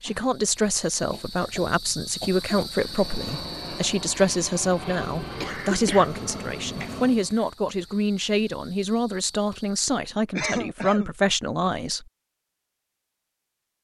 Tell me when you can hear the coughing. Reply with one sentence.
You can hear the coughing from 1.1 to 2.7 s, from 5.4 to 6.9 s and from 10.3 to 11.2 s.